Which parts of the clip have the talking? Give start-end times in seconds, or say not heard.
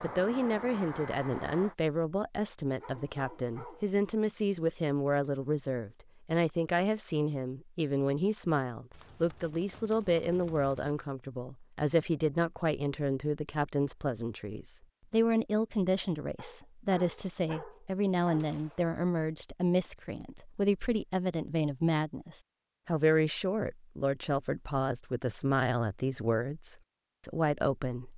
0.0-28.1.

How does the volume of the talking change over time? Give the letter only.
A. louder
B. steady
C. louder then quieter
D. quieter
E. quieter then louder
B.